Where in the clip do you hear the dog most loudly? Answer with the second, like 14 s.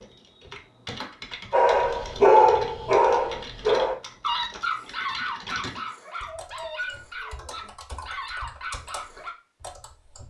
2 s.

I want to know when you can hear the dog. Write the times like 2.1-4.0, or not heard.
1.5-9.3.